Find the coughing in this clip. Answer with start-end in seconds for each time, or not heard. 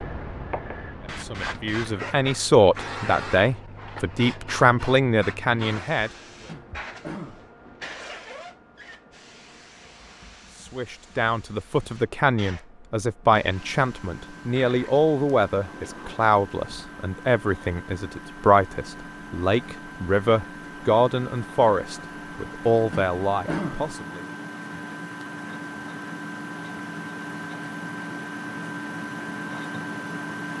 6.5-7.5, 22.9-23.9.